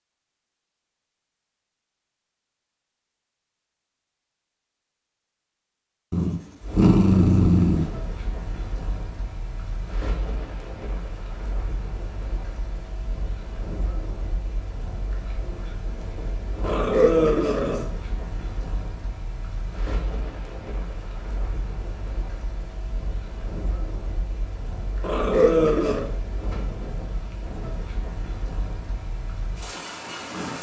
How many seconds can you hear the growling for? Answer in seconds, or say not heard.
4 s.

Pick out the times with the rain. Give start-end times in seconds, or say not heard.
6.6-30.5.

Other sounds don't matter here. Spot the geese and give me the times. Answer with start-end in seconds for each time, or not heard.
not heard.